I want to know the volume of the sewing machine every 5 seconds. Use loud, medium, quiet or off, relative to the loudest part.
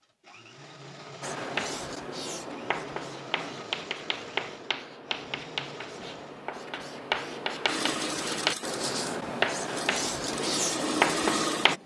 quiet, medium, loud.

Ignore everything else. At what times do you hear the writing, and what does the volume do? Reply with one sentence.
You can hear the writing from 1.2 to 11.8 s, getting louder.